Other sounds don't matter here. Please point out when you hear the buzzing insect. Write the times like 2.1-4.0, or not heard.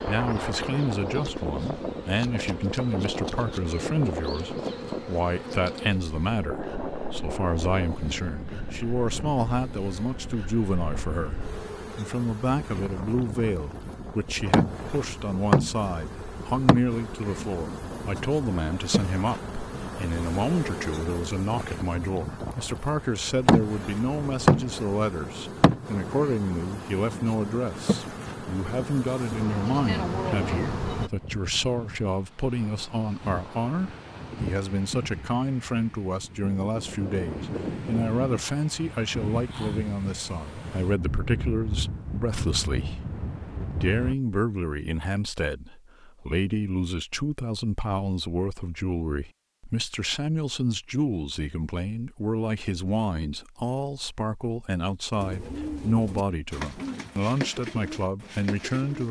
0.0-31.1.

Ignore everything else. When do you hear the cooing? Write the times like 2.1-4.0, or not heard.
55.1-59.0.